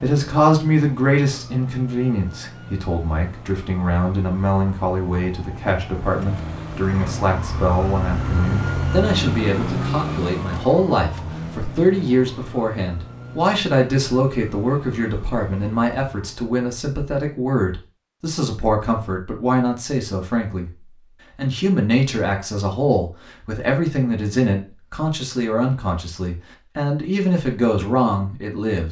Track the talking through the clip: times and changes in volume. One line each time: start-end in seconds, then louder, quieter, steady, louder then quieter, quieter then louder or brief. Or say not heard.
0.0-28.8 steady.